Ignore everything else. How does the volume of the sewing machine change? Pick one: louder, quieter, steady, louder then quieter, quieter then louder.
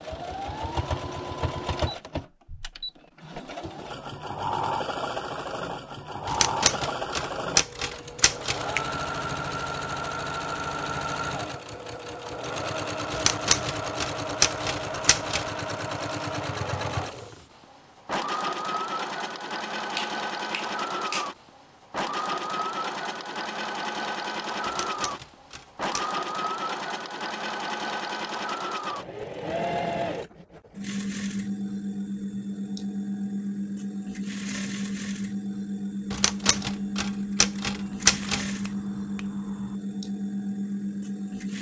steady.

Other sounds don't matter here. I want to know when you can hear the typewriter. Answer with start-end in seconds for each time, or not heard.
6.2-8.7, 13.1-15.5, 24.6-26.1, 36.1-38.5.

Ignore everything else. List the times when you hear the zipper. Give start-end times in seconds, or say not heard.
not heard.